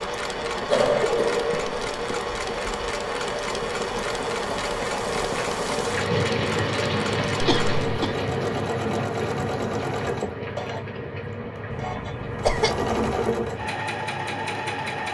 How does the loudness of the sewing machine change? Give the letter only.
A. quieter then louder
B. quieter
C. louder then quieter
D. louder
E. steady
E.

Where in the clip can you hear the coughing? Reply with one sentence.
The coughing can be heard from 0.7 to 2.2 s, from 7.4 to 8.2 s and from 11.7 to 12.9 s.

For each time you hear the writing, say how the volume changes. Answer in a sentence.
You can't hear the writing here.